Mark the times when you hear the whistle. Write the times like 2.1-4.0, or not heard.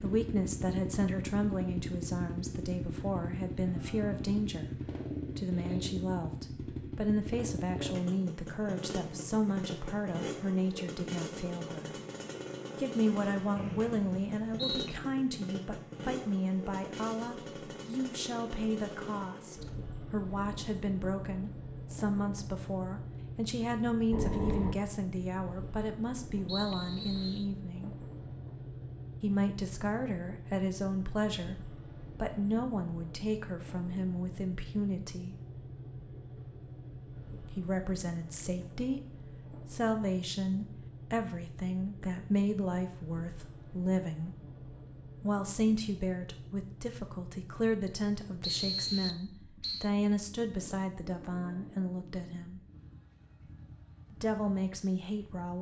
13.6-14.9, 26.4-27.4, 48.4-49.9.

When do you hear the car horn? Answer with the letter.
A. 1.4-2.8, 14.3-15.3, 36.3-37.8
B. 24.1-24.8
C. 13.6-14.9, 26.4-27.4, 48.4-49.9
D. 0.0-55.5
B.